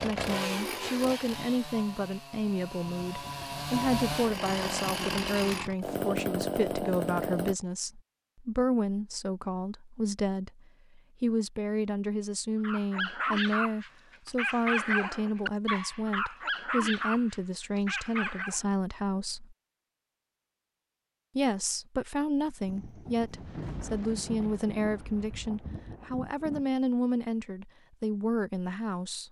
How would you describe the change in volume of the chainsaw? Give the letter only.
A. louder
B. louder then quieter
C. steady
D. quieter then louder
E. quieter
D.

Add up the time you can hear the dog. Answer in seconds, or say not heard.
6 s.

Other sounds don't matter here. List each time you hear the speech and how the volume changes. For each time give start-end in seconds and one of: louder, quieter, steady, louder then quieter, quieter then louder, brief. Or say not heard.
0.0-19.6 steady
21.4-29.2 steady.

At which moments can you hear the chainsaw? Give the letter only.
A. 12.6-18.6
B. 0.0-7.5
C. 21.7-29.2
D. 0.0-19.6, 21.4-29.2
B.